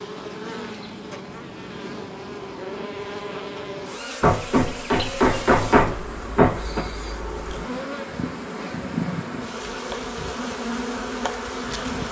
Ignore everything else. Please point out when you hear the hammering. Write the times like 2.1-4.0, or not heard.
4.2-6.8.